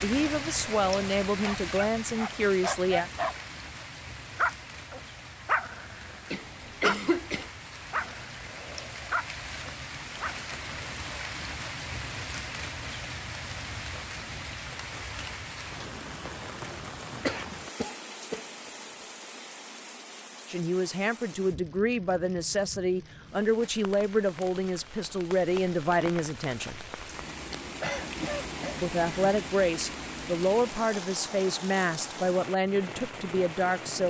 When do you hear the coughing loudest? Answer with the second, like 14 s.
7 s.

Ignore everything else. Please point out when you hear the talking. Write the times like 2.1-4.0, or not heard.
0.0-3.1, 20.4-26.8, 28.8-34.0.